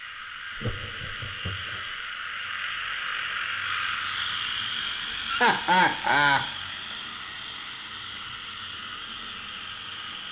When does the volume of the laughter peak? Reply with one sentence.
The volume of the laughter peaks at 6 seconds.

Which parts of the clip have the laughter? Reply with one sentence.
You can hear the laughter from 0.6 to 1.9 s and from 5.2 to 6.5 s.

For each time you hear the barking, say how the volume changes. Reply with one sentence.
You can't hear the barking here.